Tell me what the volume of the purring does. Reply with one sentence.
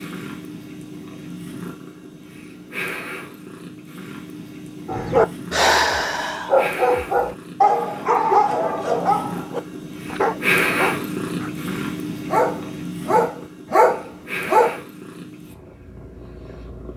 The loudness of the purring goes up, then down.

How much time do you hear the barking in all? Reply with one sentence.
The barking can be heard for 10 seconds in total.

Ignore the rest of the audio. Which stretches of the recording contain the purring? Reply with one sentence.
You can hear the purring from 0.0 to 16.9 s.